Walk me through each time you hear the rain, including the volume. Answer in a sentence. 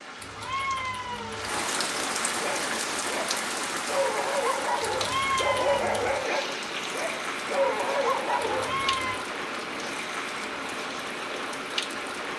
The rain can be heard from 0.0 to 12.3 s, at a steady volume.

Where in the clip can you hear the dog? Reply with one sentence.
The dog can be heard from 2.4 to 8.9 s.